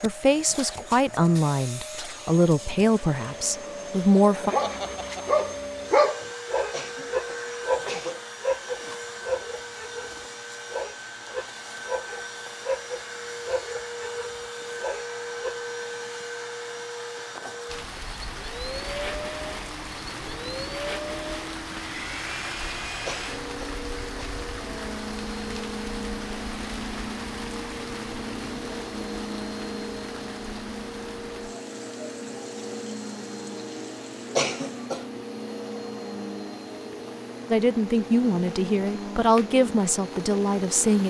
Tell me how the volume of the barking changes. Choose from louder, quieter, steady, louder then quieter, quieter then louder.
quieter.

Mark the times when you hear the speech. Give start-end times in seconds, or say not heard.
0.0-4.5, 37.5-41.0.